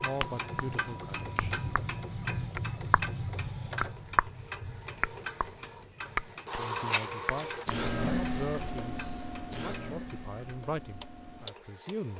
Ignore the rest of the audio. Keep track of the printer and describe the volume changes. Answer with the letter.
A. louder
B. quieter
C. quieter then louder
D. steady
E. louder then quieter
E.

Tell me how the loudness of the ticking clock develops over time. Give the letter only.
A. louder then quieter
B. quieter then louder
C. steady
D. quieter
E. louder
D.